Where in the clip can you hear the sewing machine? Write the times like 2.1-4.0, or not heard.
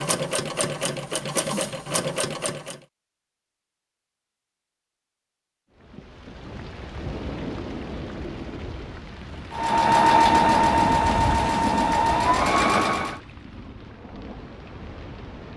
0.0-2.8, 9.6-13.2.